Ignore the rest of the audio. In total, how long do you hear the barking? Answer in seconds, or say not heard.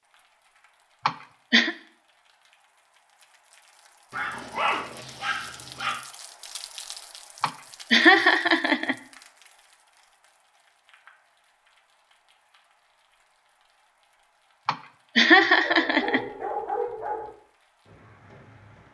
4 s.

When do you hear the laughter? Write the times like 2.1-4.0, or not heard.
1.1-1.8, 7.4-8.9, 14.7-16.2.